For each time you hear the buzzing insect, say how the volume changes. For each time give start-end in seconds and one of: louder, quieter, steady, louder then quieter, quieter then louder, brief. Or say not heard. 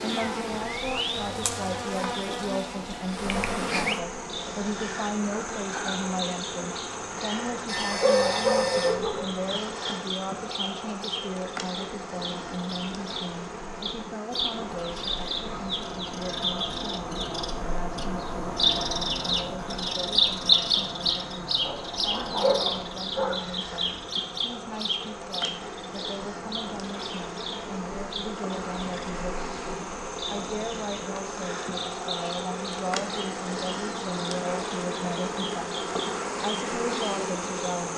0.0-37.9 quieter then louder.